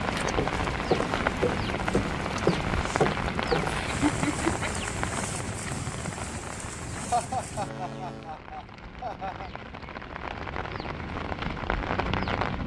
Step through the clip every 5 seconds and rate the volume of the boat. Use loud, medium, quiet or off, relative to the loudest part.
loud, medium, off.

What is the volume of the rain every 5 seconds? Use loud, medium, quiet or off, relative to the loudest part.
loud, medium, loud.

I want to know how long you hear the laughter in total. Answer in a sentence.
The laughter can be heard for 3 seconds in total.